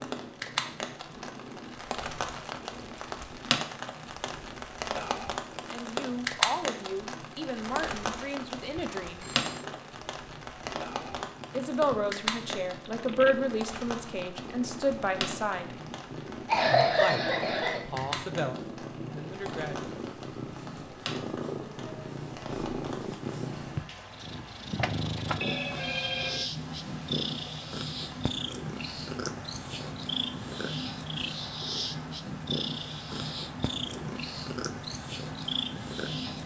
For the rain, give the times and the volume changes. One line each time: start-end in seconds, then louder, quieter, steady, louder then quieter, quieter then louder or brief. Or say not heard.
0.0-36.4 quieter.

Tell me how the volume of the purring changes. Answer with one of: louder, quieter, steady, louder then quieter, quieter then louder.
louder.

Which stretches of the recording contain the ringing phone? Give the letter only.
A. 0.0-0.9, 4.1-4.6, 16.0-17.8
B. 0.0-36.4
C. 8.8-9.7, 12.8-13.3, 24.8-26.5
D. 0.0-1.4
C.